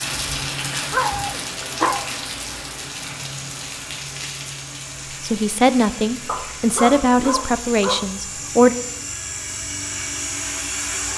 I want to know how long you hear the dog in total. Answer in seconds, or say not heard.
3 s.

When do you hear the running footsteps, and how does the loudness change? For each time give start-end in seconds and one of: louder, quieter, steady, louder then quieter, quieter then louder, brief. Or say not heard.
not heard.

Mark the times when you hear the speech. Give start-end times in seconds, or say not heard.
5.2-8.8.